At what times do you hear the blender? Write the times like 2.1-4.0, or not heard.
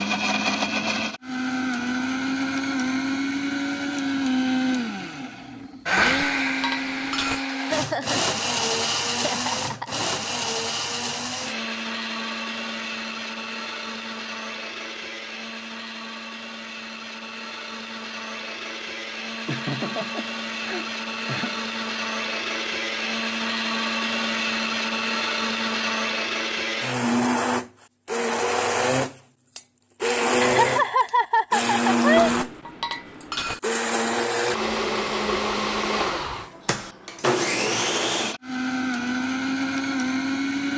0.0-40.7.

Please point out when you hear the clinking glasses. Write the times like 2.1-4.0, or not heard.
6.0-7.4, 32.1-33.6.